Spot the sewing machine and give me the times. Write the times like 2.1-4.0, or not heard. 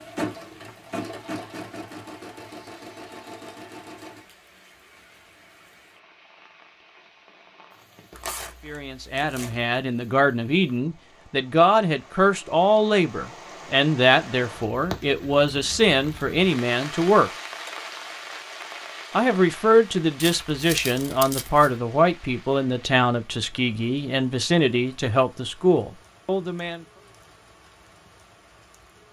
0.0-4.2.